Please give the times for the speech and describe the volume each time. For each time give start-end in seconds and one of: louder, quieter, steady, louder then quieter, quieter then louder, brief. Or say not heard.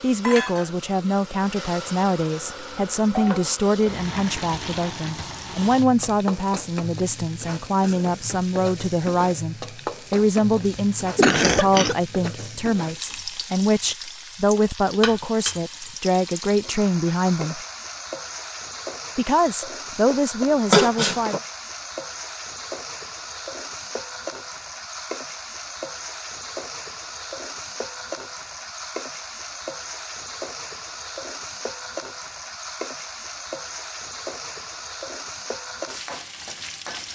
0.0-17.6 steady
19.1-21.4 brief.